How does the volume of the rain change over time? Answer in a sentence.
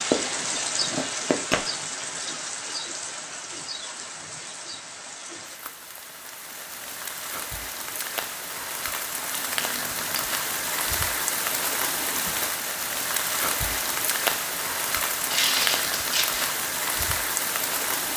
The volume of the rain goes down, then up.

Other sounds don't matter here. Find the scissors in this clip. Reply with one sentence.
You can hear the scissors from 0.1 to 1.8 s, from 9.6 to 10.3 s and from 15.2 to 16.4 s.